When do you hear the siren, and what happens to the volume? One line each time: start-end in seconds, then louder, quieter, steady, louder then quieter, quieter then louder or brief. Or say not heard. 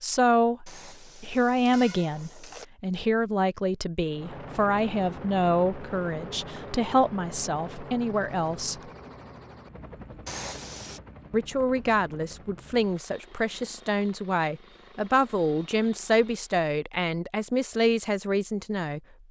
not heard.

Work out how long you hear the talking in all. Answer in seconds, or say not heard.
17 s.